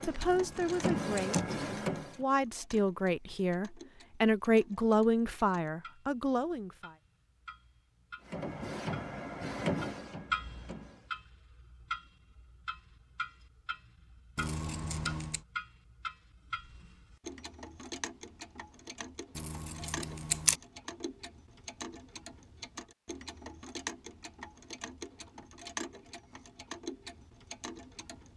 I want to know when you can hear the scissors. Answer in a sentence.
You can hear the scissors from 0.2 to 1.4 s, from 14.3 to 15.4 s and from 19.4 to 20.6 s.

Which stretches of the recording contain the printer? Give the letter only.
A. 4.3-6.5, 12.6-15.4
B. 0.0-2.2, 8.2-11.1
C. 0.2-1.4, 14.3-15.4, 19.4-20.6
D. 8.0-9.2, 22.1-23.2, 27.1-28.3
B.